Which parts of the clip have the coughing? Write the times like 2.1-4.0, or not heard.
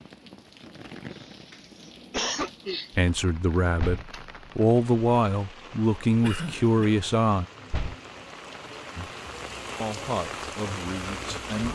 1.1-2.9, 6.2-7.0.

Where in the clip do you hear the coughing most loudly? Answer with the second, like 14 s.
2 s.